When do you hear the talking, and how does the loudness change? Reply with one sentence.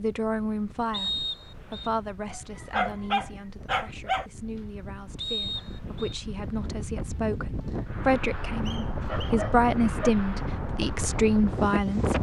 The talking can be heard from 0.0 to 12.1 s, getting quieter then louder.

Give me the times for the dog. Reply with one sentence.
You can hear the dog from 2.3 to 4.2 s and from 9.1 to 10.2 s.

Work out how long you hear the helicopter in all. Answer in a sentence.
You can't hear the helicopter here.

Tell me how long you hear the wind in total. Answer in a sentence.
You can hear the wind for 12 seconds altogether.